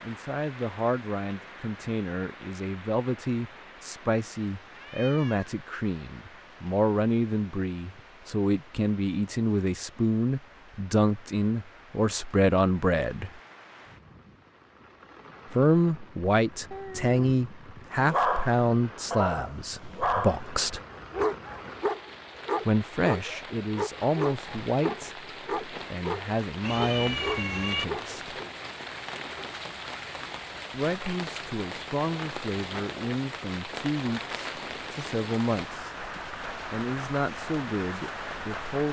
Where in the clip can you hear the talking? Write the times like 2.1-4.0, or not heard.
0.0-13.3, 15.5-20.8, 22.6-28.4, 30.7-38.8.